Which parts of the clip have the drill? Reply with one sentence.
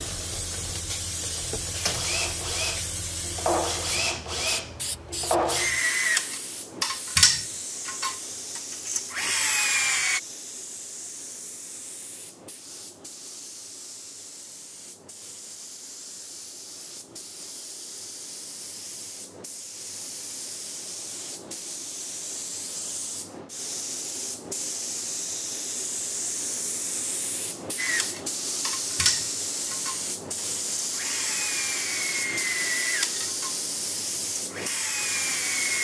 You can hear the drill from 1.9 to 10.2 s and from 27.8 to 35.7 s.